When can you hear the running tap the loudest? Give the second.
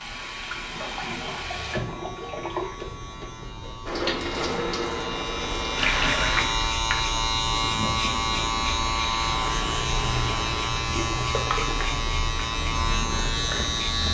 6 s.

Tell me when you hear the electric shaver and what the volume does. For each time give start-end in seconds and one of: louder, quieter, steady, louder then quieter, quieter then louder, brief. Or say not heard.
0.0-14.0 louder.